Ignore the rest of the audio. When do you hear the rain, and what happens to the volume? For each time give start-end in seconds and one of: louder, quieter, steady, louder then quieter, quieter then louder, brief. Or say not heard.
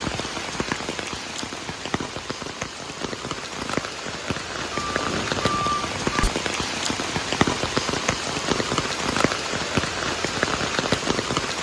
0.0-11.5 louder.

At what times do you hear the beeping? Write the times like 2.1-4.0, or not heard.
4.7-6.3.